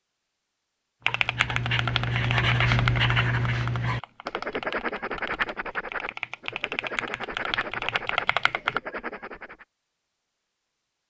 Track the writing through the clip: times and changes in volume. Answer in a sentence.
The writing can be heard from 1.1 to 9.7 s, getting quieter.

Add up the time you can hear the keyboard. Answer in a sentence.
The keyboard can be heard for 8 seconds in total.